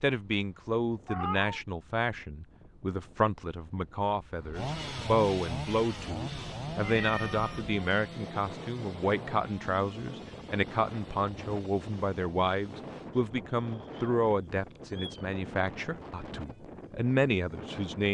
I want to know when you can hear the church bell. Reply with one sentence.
You can't hear the church bell here.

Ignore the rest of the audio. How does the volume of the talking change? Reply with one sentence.
The volume of the talking stays about the same.